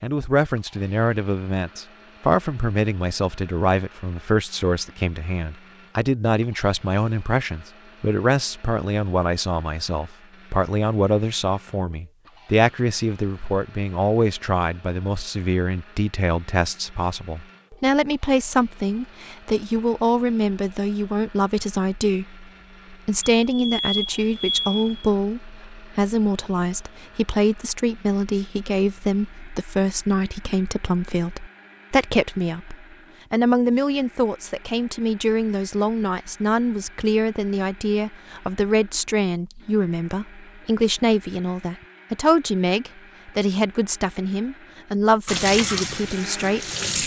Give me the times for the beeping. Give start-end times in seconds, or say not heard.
23.4-25.1.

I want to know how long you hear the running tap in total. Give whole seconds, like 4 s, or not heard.
2 s.